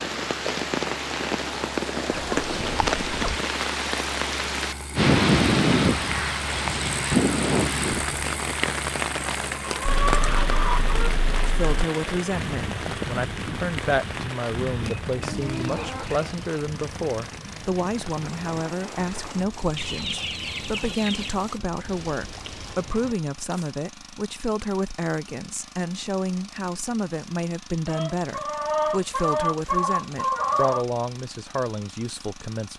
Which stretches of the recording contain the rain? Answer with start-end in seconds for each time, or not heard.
0.0-22.9.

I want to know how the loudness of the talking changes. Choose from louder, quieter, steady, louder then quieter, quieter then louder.
steady.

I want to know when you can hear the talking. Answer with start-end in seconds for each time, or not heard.
11.4-32.7.